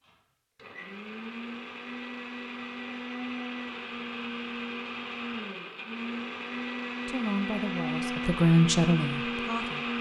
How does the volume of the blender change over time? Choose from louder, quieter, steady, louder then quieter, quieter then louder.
louder.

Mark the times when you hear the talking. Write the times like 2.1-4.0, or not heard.
7.0-9.9.